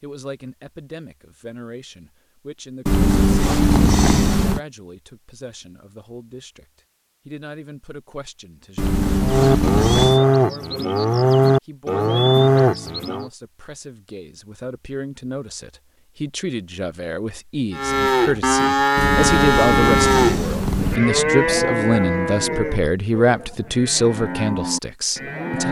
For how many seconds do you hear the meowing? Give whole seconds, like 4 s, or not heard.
5 s.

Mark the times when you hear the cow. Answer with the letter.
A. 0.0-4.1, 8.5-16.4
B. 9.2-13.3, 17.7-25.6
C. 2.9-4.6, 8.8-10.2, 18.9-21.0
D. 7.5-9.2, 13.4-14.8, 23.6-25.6
B.